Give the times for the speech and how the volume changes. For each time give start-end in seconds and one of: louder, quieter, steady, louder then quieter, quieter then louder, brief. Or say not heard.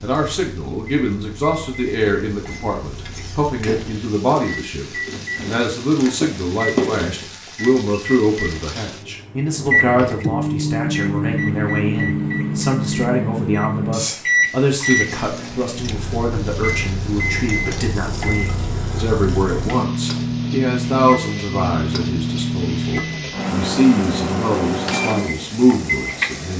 0.0-26.5 steady.